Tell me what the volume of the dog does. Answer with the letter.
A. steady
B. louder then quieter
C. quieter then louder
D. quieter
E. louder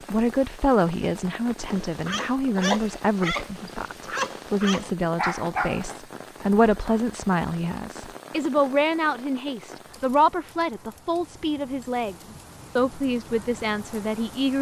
C.